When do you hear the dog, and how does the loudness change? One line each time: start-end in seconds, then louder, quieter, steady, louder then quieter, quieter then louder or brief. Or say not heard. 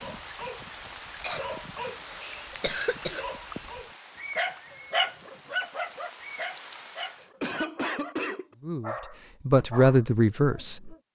0.0-11.0 louder then quieter.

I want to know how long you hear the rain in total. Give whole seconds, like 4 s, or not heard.
7 s.